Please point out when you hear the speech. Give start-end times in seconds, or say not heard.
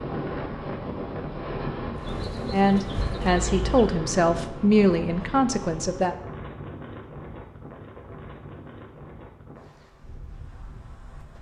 2.5-6.2.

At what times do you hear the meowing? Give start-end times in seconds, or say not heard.
not heard.